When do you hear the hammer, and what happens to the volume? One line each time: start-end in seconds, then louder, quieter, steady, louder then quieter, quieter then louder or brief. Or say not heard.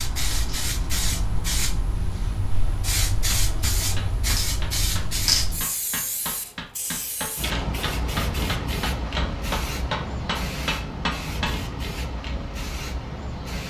3.1-11.6 louder.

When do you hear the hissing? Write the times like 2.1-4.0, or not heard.
0.0-13.6.